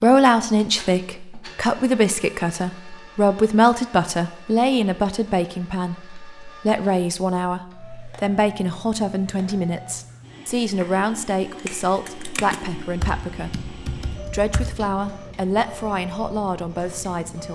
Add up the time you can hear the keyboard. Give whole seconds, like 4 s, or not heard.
4 s.